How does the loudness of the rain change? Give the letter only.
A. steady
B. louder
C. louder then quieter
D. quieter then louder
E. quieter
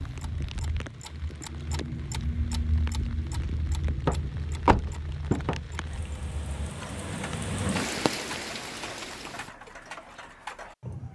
B.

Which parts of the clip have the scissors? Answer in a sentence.
You can't hear the scissors here.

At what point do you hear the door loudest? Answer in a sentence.
The loudest moment of the door is at 5 seconds.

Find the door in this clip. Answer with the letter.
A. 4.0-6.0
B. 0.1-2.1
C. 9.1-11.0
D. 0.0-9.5
A.